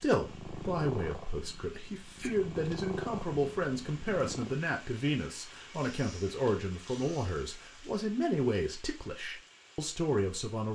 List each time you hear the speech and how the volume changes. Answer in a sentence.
You can hear the speech from 0.0 to 10.7 s, at a steady volume.